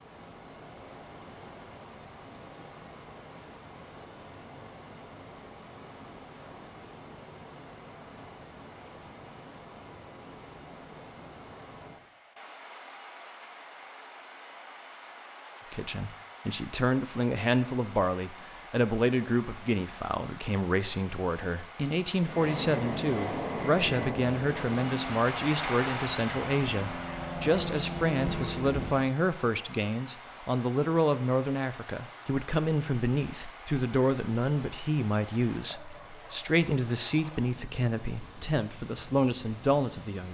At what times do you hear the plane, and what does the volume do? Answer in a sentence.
You can hear the plane from 22.2 to 29.1 s, getting quieter then louder.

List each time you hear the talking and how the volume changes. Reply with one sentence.
The talking can be heard from 15.7 to 40.2 s, at a steady volume.